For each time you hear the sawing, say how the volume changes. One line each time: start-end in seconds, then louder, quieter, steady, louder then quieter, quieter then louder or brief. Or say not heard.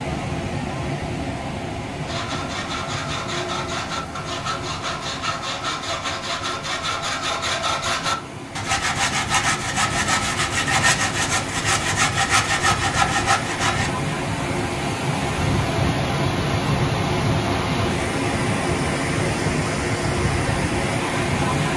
2.0-13.9 louder.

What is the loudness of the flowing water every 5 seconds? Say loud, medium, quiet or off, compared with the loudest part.
medium, quiet, medium, loud, loud.